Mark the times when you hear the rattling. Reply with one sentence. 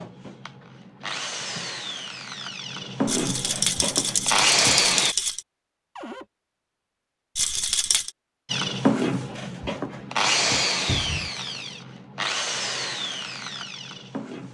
You can hear the rattling from 3.0 to 5.5 s and from 7.3 to 8.1 s.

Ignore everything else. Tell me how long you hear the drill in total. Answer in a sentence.
The drill can be heard for 11 seconds in total.